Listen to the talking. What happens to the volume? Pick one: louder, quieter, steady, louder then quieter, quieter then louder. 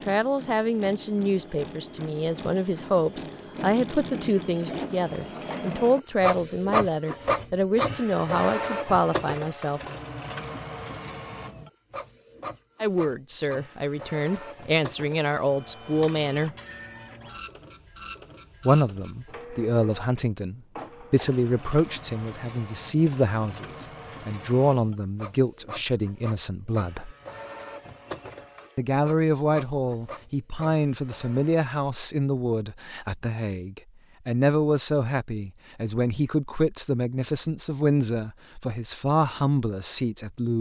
steady.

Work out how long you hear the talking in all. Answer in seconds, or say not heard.
34 s.